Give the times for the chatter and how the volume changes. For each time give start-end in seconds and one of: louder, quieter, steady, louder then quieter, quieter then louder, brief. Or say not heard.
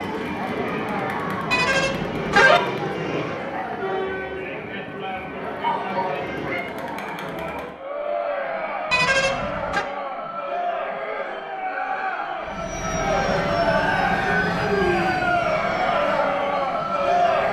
0.0-17.4 louder.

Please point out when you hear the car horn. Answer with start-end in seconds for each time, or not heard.
1.5-2.6, 8.9-9.8.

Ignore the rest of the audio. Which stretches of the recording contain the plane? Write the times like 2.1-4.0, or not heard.
0.0-6.7, 12.4-17.4.